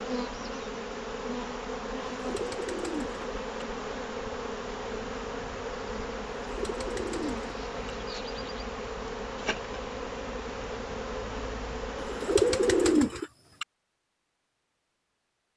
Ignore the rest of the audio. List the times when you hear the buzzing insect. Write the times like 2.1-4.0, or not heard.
0.0-13.2.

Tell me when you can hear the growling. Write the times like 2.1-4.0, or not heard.
not heard.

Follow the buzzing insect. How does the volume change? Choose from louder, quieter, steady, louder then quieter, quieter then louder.
steady.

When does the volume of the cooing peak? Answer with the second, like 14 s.
13 s.